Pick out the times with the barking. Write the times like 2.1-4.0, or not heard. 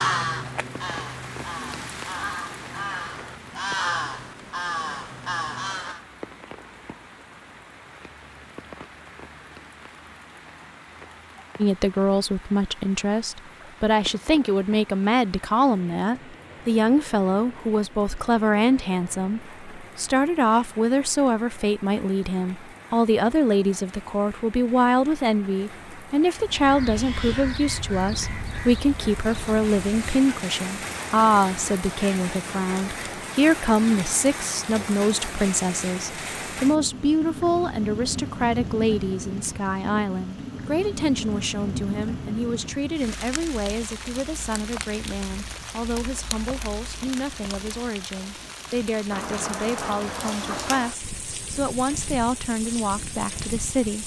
not heard.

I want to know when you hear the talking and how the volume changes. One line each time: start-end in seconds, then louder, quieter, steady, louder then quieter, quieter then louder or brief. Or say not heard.
11.6-54.0 quieter.